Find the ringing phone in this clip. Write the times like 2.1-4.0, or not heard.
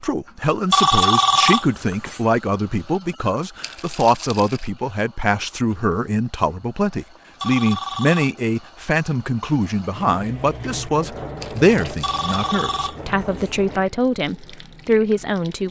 0.7-2.2, 7.4-8.3, 12.0-13.5.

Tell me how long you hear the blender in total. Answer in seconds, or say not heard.
not heard.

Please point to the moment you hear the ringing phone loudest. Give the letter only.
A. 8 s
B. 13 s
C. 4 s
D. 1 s
D.